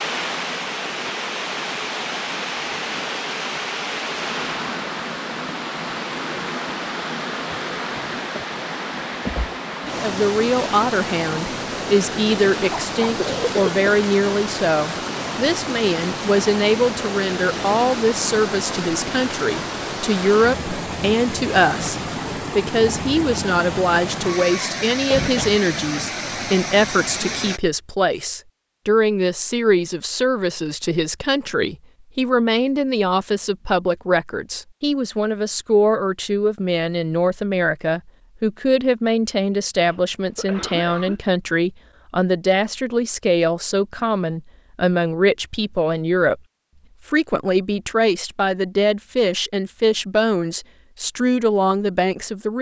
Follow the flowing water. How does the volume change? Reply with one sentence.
The volume of the flowing water stays about the same.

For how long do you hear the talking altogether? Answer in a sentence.
The talking can be heard for 42 seconds in total.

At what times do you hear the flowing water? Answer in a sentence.
You can hear the flowing water from 0.0 to 27.6 s.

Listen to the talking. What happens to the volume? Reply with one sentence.
The volume of the talking stays about the same.